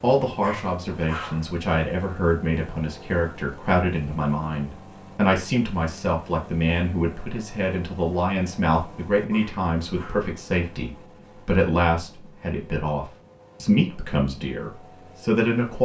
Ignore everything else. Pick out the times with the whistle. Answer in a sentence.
You can't hear the whistle here.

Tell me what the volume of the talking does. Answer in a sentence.
The volume of the talking stays about the same.